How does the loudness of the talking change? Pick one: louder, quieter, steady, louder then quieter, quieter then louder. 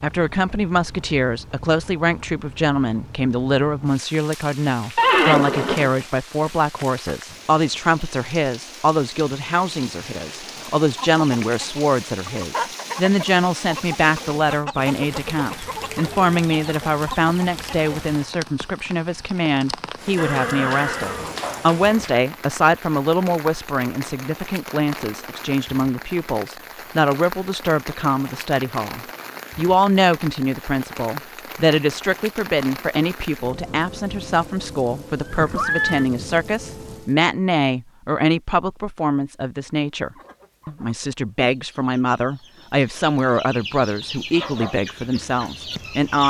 steady.